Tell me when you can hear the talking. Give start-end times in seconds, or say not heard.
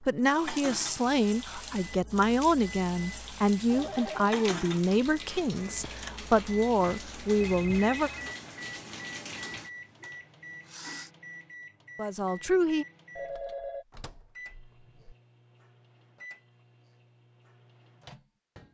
0.1-8.1, 11.9-12.8.